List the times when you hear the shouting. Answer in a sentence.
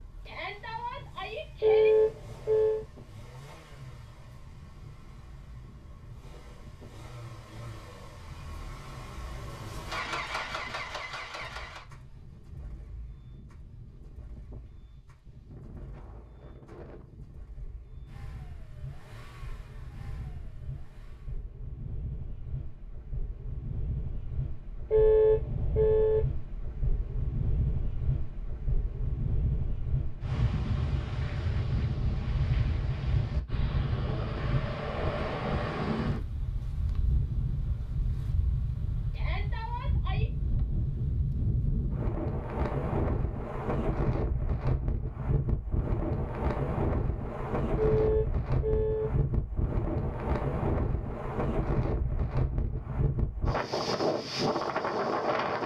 The shouting can be heard from 0.2 to 1.9 s and from 39.1 to 40.3 s.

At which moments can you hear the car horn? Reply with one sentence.
The car horn can be heard from 1.6 to 2.9 s, from 24.9 to 26.2 s and from 47.8 to 49.1 s.